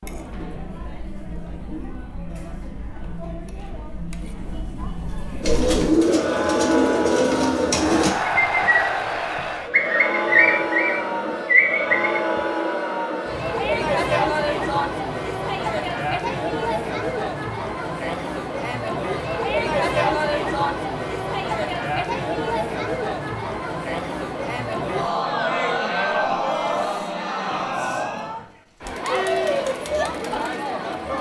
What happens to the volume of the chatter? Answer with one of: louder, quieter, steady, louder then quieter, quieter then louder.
louder.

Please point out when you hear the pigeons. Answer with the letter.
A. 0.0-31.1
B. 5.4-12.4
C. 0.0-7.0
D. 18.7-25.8
B.